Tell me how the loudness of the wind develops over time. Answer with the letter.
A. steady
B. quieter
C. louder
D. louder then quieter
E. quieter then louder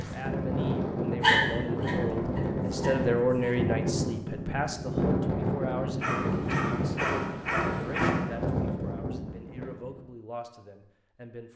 A.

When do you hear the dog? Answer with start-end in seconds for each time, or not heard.
1.2-3.5, 6.0-8.2.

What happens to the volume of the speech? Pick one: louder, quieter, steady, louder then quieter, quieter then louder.
louder then quieter.